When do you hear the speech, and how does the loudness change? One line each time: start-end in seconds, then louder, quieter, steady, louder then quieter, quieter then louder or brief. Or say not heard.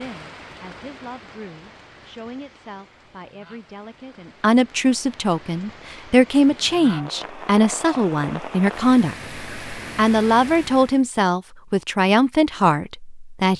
0.0-13.5 louder.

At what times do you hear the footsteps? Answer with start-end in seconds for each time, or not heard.
not heard.